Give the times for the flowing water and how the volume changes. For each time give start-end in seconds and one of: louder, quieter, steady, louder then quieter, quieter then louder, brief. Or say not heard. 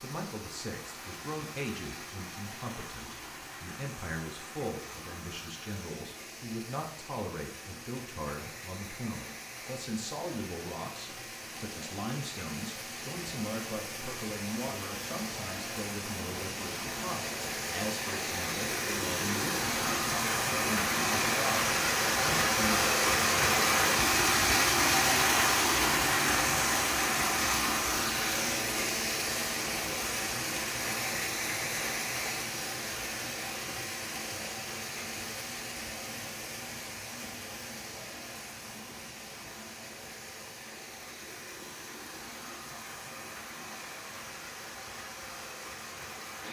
0.0-46.4 louder then quieter.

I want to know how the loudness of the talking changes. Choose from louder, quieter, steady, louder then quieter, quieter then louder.
steady.